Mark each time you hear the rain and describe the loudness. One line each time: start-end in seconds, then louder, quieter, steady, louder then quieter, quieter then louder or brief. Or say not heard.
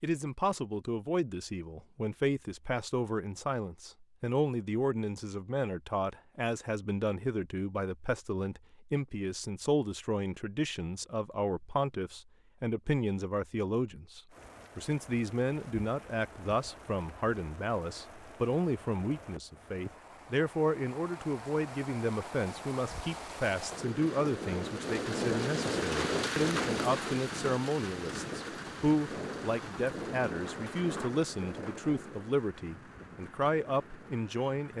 14.3-34.7 louder then quieter.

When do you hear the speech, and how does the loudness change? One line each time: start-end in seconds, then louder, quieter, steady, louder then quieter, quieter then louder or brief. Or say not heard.
0.0-34.7 steady.